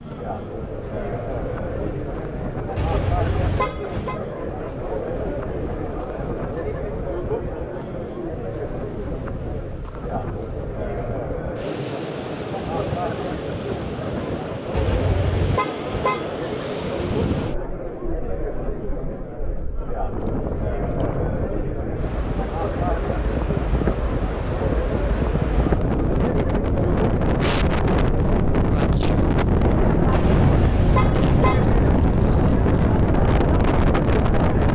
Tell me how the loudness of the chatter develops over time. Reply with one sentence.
The loudness of the chatter stays about the same.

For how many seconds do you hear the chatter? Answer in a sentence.
The chatter can be heard for 35 seconds in total.